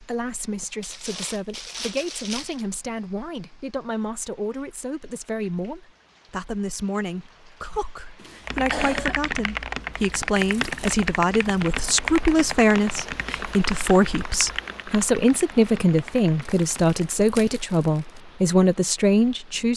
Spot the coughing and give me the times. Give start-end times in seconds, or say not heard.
8.2-9.2.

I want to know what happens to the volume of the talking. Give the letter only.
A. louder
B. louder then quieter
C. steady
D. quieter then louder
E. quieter
A.